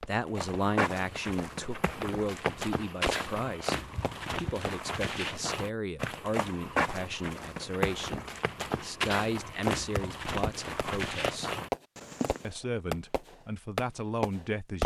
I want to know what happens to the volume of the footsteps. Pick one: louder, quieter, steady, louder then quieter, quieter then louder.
steady.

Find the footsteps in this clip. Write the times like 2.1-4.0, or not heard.
0.3-12.4.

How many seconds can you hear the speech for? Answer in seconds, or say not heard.
14 s.